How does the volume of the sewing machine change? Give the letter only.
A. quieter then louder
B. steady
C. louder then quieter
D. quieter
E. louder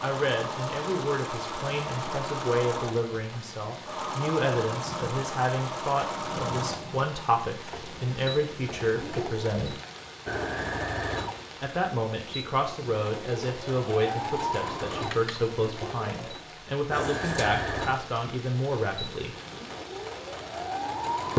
B.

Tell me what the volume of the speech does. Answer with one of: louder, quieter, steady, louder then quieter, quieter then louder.
steady.